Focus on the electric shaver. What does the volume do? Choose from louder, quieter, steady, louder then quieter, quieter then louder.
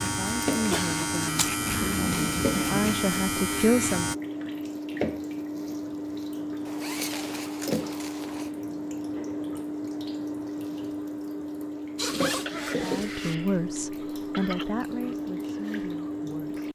steady.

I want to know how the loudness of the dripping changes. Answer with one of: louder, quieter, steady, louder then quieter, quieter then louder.
steady.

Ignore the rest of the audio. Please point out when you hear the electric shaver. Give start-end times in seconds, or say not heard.
0.0-4.2.